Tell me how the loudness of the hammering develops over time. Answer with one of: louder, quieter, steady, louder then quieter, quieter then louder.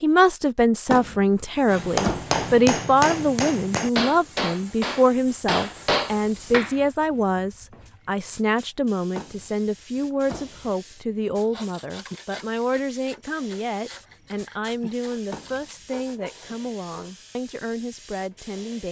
steady.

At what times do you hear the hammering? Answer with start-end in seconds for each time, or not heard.
1.6-6.8.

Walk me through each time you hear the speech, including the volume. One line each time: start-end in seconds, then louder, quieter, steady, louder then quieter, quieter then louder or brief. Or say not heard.
0.0-18.8 quieter.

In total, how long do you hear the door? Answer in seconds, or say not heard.
4 s.